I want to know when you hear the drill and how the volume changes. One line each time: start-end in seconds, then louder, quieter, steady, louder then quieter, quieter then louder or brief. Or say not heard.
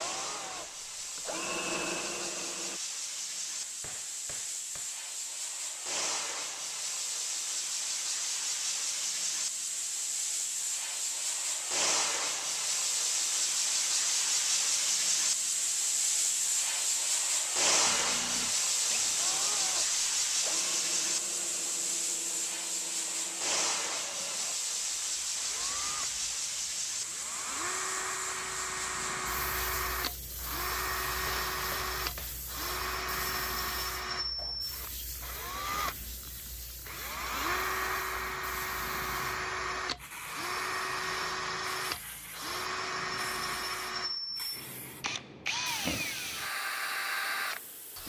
0.0-2.8 brief
17.8-48.0 louder.